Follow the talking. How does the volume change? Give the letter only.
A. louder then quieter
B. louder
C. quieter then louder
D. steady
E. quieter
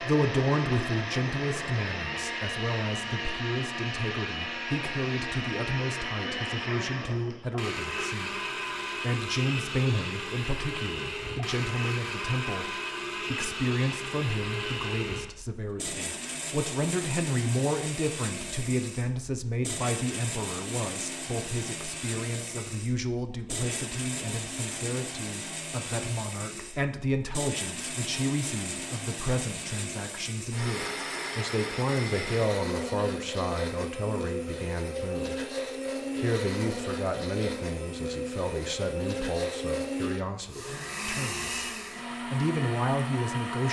D.